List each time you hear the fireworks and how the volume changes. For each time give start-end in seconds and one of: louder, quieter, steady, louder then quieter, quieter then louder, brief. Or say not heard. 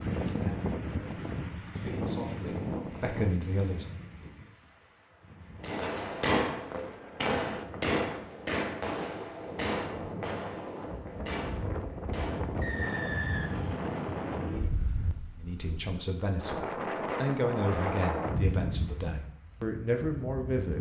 5.6-13.2 quieter.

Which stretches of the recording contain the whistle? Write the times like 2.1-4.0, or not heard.
12.6-13.8.